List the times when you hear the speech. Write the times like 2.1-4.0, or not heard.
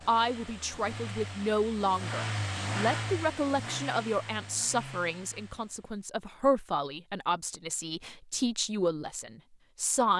0.1-10.1.